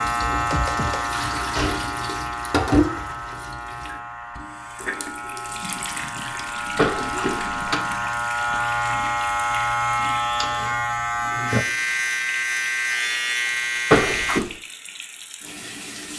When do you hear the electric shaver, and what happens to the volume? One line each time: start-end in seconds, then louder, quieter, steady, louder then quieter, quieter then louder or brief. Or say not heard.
0.0-14.4 quieter then louder.